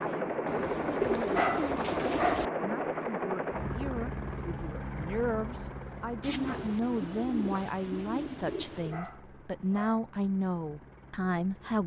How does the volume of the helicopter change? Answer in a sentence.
The loudness of the helicopter goes down.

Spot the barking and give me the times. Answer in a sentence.
The barking can be heard from 1.3 to 2.5 s and from 8.9 to 10.0 s.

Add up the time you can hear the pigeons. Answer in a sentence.
The pigeons can be heard for 5 seconds in total.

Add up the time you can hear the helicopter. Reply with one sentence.
You can hear the helicopter for 12 seconds altogether.